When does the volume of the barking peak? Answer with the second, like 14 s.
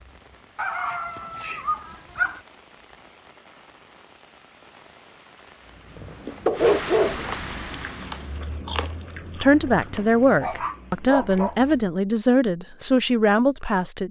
7 s.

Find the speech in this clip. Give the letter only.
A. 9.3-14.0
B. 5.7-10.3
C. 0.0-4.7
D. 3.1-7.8
A.